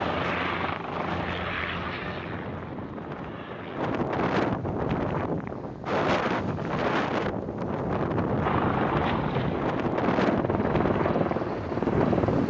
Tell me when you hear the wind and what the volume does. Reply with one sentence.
The wind can be heard from 0.0 to 12.4 s, getting louder.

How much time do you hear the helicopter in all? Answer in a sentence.
The helicopter can be heard for 8 seconds in total.